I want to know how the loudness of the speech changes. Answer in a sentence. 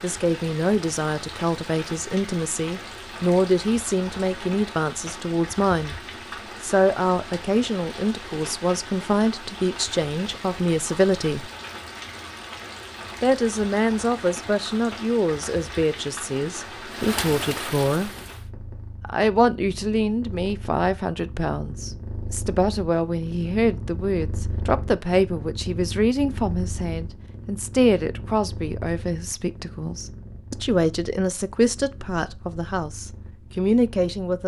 The volume of the speech stays about the same.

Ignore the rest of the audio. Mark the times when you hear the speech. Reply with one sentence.
The speech can be heard from 0.0 to 6.0 s, from 6.6 to 11.5 s, from 13.2 to 18.1 s and from 19.0 to 34.4 s.